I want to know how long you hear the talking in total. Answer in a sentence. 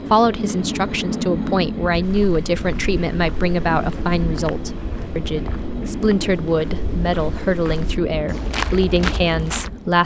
The talking can be heard for 10 seconds in total.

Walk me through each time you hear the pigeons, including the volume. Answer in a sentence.
You can't hear the pigeons here.